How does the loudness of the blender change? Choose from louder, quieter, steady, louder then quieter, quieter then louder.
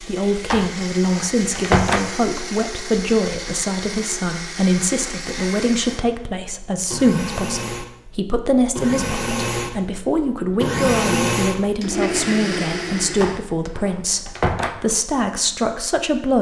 louder.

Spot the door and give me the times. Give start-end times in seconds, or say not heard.
0.5-2.1, 13.2-14.8.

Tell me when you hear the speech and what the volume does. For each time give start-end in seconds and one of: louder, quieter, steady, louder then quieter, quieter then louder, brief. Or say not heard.
0.0-16.3 steady.